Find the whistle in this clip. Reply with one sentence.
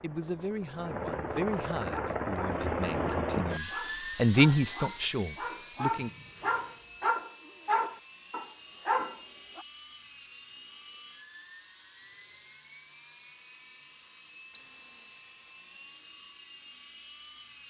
You can hear the whistle from 6.0 to 7.2 s and from 14.5 to 15.2 s.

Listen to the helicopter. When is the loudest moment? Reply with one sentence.
The loudest moment of the helicopter is at 3 seconds.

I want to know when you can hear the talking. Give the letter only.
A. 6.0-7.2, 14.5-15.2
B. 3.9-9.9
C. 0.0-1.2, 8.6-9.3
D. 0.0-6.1
D.